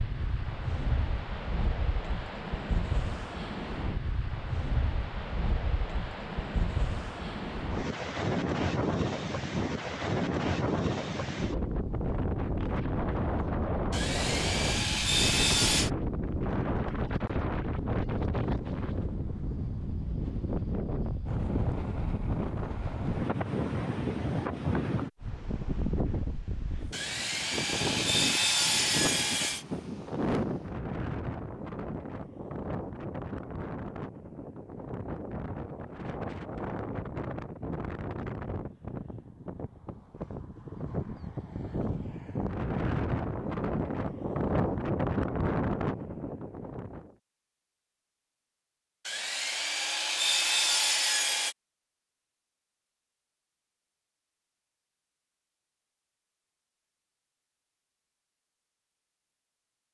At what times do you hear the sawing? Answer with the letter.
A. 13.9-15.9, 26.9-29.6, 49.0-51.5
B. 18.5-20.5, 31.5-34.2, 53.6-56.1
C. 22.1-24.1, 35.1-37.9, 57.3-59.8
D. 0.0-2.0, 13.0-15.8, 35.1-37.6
A.